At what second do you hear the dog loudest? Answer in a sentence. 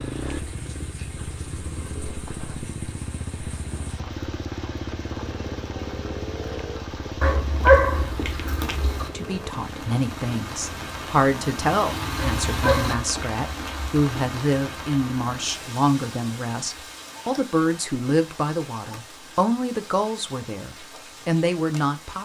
The loudest moment of the dog is at 8 seconds.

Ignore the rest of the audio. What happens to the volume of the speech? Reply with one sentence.
The loudness of the speech stays about the same.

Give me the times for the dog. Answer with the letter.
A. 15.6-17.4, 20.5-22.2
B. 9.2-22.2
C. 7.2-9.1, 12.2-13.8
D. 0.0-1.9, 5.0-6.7
C.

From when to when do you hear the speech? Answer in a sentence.
The speech can be heard from 9.2 to 22.2 s.